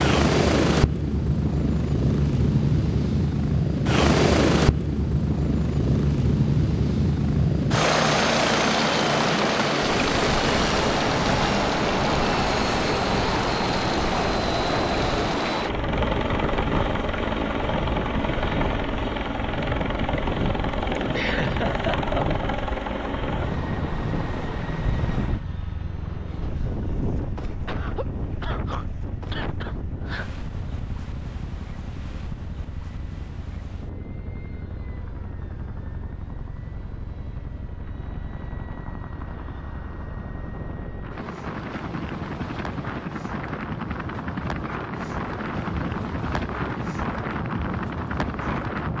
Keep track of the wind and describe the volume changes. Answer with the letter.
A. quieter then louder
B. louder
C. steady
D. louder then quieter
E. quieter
A.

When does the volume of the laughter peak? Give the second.
21 s.